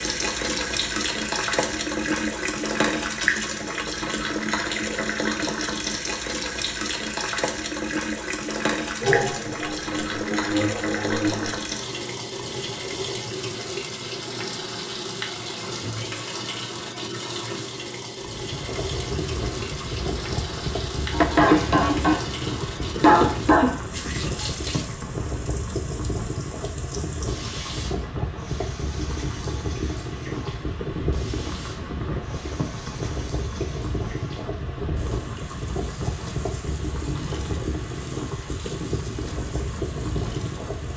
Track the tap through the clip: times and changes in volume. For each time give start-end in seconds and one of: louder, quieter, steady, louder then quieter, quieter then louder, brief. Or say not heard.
0.0-40.9 quieter.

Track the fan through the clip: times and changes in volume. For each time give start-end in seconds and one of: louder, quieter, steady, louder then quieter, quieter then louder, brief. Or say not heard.
18.2-40.9 steady.